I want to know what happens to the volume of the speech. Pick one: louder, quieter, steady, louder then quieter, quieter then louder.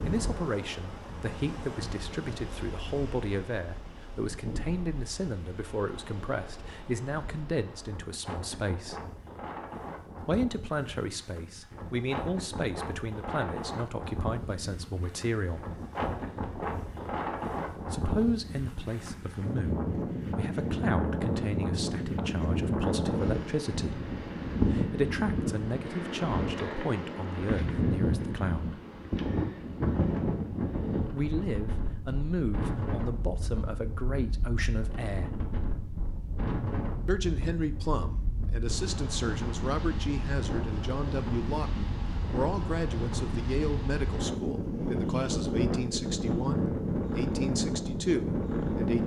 steady.